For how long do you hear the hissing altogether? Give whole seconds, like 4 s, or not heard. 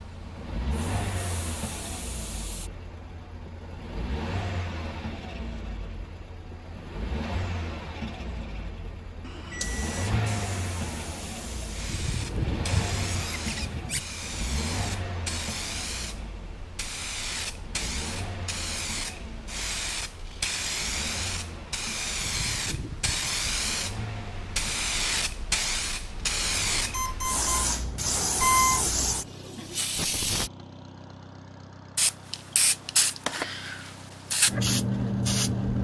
27 s.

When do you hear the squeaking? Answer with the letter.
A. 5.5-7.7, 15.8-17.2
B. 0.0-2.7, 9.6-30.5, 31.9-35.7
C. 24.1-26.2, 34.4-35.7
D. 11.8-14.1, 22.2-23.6
D.